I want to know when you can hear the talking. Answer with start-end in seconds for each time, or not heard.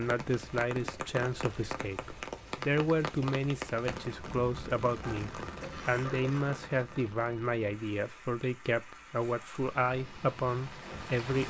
0.0-11.4.